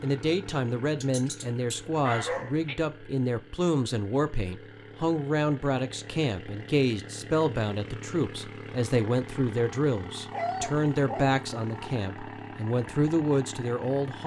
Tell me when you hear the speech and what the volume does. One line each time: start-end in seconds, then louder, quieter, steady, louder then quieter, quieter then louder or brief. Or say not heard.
0.0-14.2 steady.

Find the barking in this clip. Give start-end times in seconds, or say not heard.
1.0-2.8, 10.3-11.9.